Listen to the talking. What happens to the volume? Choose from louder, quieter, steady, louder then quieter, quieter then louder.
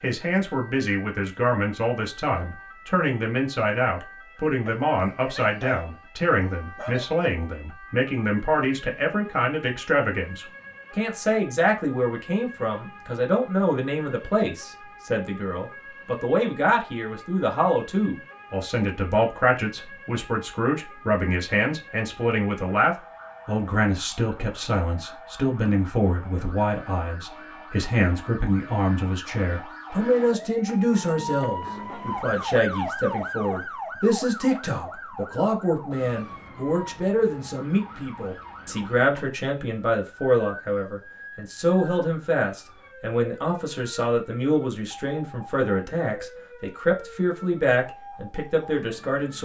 steady.